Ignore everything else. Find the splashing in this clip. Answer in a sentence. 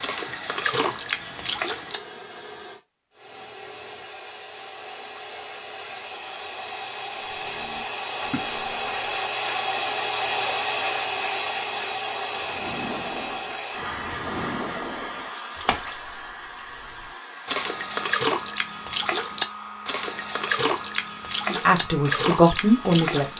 The splashing can be heard from 0.0 to 2.0 s, from 7.2 to 9.2 s and from 12.2 to 23.3 s.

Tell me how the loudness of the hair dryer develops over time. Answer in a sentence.
The volume of the hair dryer goes up, then down.